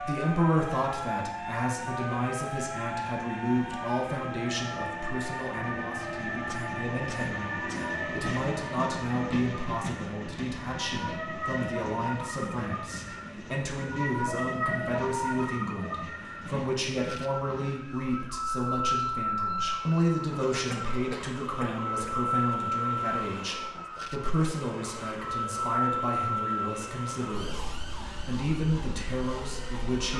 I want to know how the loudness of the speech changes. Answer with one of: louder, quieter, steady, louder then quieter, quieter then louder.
steady.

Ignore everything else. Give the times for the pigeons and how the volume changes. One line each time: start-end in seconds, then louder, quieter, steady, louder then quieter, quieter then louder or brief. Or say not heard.
not heard.